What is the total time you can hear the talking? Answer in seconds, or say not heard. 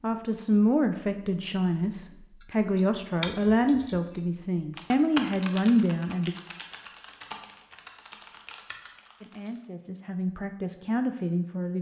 9 s.